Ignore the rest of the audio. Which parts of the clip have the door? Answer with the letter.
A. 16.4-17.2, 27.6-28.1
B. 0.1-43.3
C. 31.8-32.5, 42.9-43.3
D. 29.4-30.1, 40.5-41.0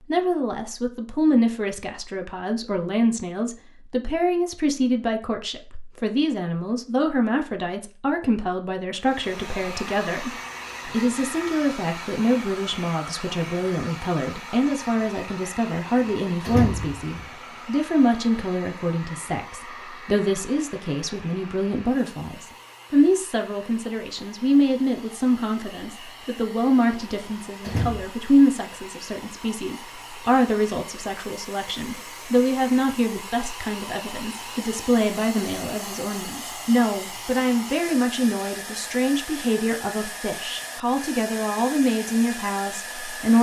A.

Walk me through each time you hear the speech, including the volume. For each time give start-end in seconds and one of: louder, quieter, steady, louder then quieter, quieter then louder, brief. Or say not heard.
0.1-43.3 steady.